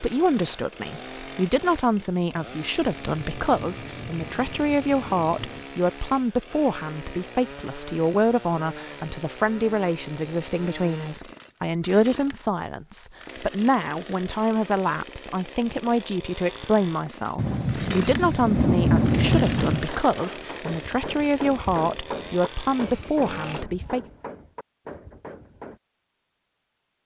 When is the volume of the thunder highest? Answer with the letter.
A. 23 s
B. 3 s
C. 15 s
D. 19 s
D.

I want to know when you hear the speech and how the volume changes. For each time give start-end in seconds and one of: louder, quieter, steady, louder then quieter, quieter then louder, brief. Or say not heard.
0.0-24.1 steady.